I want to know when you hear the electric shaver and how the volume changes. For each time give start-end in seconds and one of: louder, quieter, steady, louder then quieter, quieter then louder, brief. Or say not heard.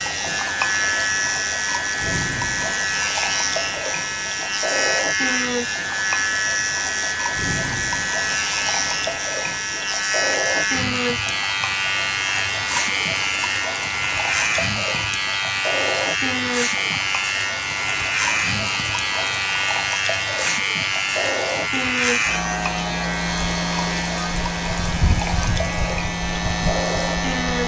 0.0-27.6 steady.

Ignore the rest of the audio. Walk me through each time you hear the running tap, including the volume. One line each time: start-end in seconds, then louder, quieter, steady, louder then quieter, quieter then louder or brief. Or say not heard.
0.0-27.6 steady.